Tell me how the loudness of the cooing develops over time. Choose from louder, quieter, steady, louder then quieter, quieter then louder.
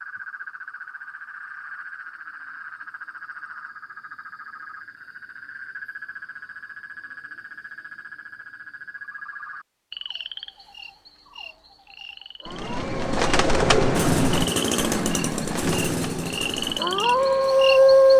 quieter.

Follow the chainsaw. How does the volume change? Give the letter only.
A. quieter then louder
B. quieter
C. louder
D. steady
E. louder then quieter
B.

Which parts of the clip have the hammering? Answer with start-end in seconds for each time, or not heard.
not heard.